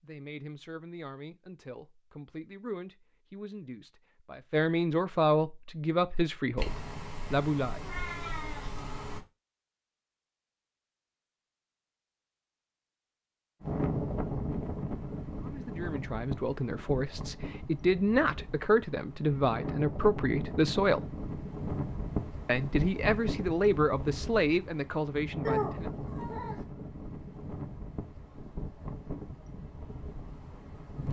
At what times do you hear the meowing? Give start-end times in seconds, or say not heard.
6.5-9.2, 25.4-26.6.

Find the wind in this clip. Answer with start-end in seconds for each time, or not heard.
13.6-31.0.